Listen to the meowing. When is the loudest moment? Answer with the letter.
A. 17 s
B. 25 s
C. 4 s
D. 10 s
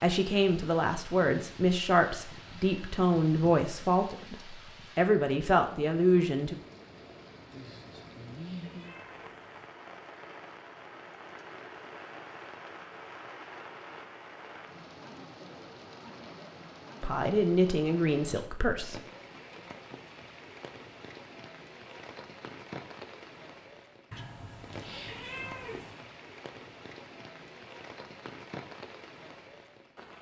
B.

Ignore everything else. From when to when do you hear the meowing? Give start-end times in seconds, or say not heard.
7.7-9.7, 24.1-26.1.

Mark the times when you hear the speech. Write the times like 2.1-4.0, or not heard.
0.0-6.5, 17.0-19.0.